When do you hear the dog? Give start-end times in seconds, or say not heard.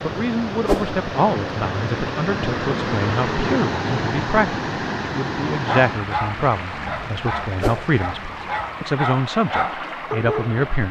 5.7-10.8.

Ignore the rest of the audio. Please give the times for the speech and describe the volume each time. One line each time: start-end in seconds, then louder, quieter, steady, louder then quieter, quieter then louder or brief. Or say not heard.
0.0-10.8 steady.